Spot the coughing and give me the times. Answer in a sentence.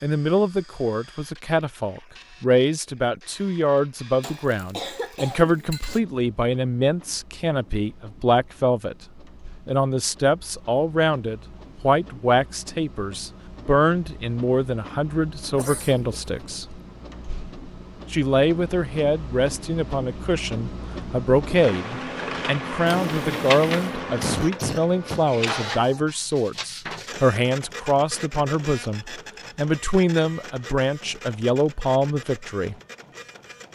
You can hear the coughing from 4.2 to 6.0 s, from 15.6 to 16.4 s and from 24.2 to 25.2 s.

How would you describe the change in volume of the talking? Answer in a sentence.
The volume of the talking stays about the same.